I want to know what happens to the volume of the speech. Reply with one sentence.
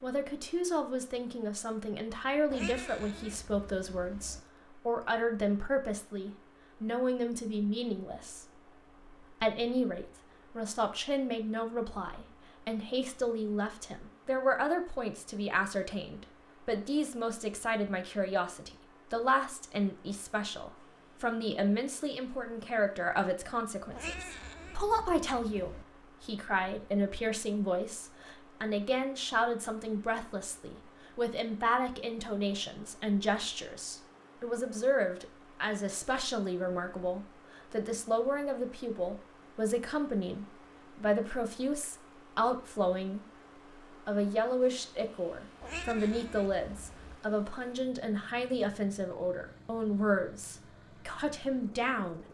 The loudness of the speech stays about the same.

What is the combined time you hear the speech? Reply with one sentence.
You can hear the speech for 51 seconds altogether.